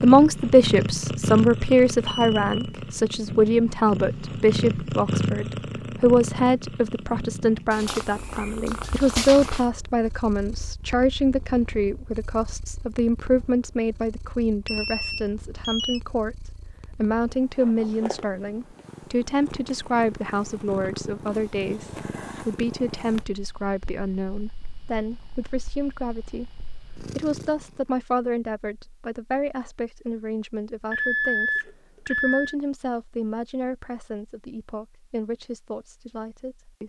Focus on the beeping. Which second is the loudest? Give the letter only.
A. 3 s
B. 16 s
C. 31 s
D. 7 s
C.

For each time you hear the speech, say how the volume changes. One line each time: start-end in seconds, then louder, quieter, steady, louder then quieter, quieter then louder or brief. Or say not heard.
0.0-36.8 quieter.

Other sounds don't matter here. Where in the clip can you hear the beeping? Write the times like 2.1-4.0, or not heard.
2.0-2.6, 14.7-16.0, 30.9-32.5.